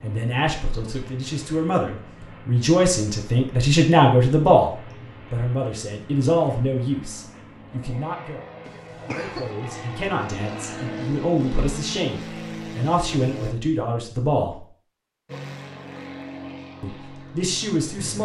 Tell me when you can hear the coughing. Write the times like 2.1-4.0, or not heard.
8.7-9.6.